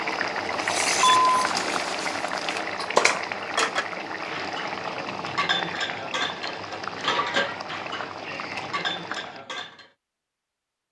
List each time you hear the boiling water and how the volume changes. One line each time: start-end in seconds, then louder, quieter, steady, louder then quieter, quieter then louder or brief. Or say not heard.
0.0-9.4 quieter.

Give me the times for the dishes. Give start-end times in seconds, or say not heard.
0.6-9.9.